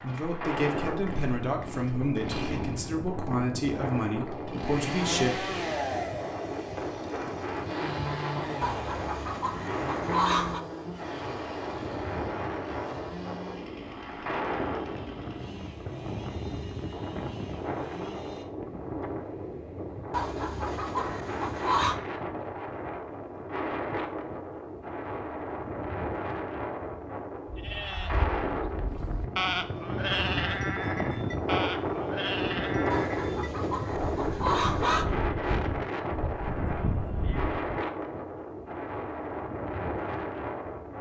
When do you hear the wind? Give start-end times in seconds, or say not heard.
0.0-40.9.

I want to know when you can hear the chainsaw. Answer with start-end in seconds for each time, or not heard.
0.0-18.4.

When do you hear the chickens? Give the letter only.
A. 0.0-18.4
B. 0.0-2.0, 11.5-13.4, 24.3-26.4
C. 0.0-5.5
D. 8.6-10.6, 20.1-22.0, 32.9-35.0
D.